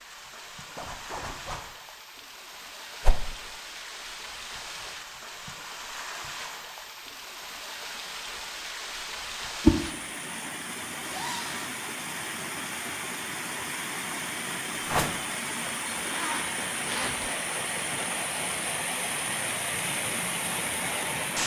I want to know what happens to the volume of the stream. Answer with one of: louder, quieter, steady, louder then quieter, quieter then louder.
louder.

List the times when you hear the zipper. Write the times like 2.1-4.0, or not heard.
0.8-1.6, 11.0-11.8, 15.9-17.4.